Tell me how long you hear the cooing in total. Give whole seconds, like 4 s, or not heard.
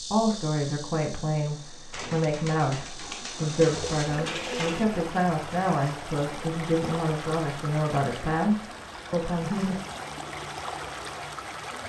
3 s.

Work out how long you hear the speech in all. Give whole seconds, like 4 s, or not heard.
10 s.